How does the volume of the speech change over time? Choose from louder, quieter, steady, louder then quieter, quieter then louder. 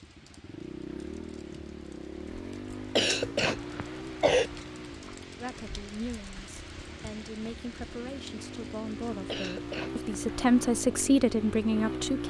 louder.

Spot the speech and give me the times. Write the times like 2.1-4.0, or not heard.
5.3-12.2.